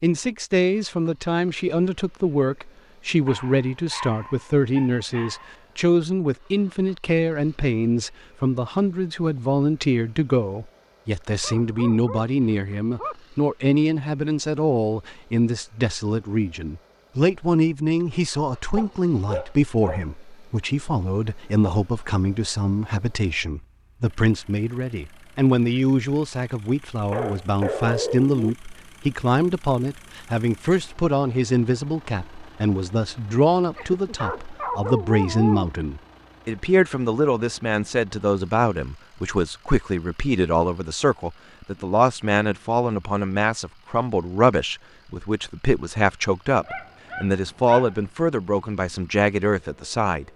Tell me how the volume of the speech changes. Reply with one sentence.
The volume of the speech stays about the same.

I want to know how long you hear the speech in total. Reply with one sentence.
You can hear the speech for 50 seconds altogether.